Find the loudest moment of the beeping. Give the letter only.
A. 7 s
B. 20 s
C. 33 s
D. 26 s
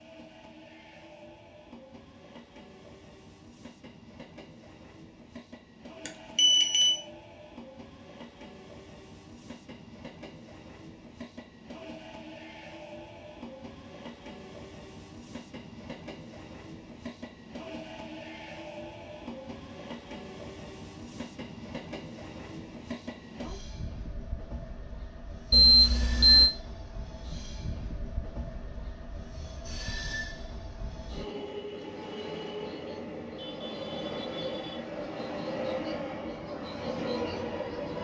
D.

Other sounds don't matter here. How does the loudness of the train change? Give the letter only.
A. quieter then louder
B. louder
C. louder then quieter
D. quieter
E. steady
B.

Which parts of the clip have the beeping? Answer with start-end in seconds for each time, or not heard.
6.0-7.0, 25.5-26.5.